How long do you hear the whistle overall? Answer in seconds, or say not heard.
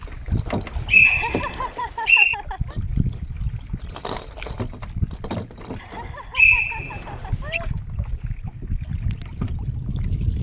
3 s.